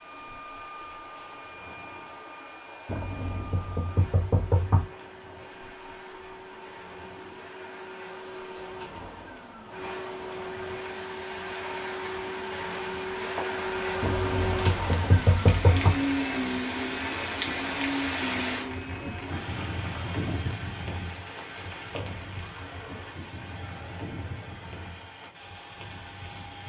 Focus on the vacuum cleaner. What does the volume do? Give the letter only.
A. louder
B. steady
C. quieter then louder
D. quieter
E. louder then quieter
E.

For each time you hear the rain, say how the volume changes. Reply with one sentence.
The rain can be heard from 0.0 to 26.6 s, getting louder then quieter.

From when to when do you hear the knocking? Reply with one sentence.
The knocking can be heard from 2.9 to 4.8 s and from 14.0 to 15.9 s.